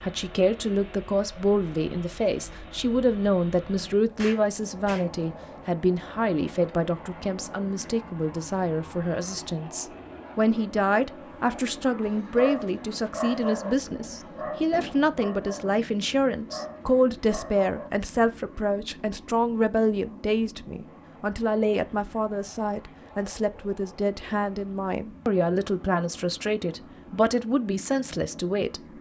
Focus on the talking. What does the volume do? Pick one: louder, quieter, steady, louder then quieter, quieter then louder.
steady.